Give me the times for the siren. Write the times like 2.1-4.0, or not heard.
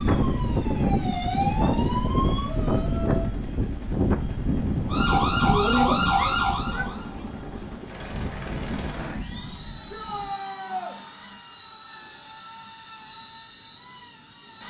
0.0-2.5, 4.8-7.8.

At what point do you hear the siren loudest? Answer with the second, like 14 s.
6 s.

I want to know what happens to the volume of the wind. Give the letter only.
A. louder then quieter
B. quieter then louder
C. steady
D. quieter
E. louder
D.